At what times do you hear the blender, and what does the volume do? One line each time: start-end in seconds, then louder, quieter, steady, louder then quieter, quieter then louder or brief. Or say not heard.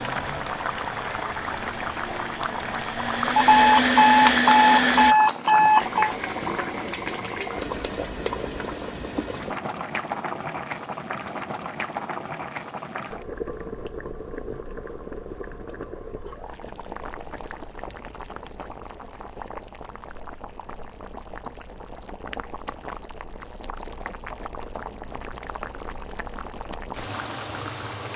0.0-5.2 louder.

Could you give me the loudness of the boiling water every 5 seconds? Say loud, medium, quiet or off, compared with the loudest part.
loud, loud, loud, medium, medium, medium.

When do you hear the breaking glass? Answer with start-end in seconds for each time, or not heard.
not heard.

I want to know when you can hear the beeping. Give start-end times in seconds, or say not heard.
3.4-6.2.